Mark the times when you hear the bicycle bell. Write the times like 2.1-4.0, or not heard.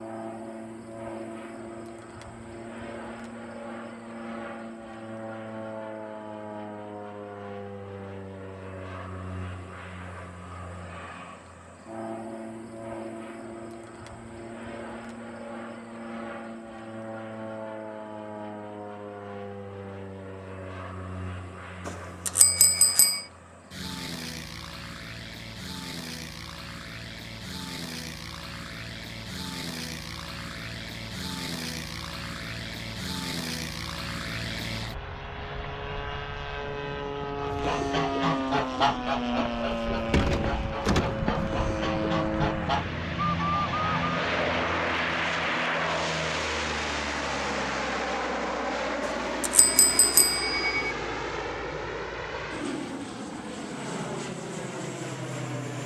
21.9-23.2, 49.0-51.0.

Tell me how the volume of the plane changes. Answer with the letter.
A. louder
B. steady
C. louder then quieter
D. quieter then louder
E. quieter
A.